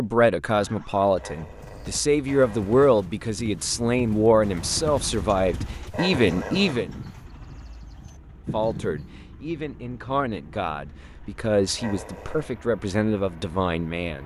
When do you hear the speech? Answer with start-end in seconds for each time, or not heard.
0.0-6.9, 8.5-14.2.